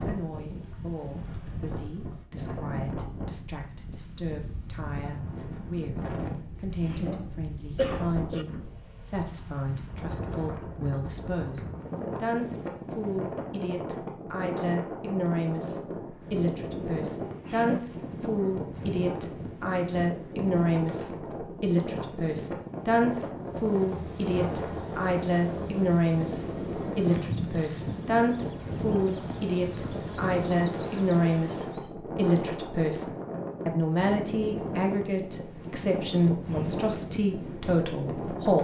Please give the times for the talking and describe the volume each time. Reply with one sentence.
You can hear the talking from 0.1 to 38.5 s, getting louder.